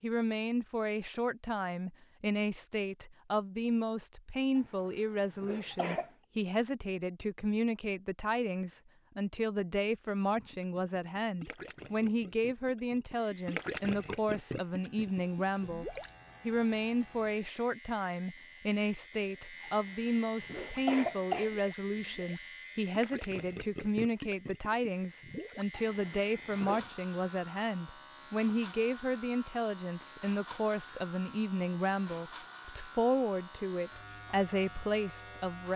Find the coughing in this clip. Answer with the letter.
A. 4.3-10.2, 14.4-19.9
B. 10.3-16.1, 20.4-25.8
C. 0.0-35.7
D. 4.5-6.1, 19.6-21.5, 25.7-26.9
D.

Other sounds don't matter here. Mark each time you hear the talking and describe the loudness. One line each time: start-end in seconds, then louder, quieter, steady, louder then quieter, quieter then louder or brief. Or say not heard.
0.0-35.7 steady.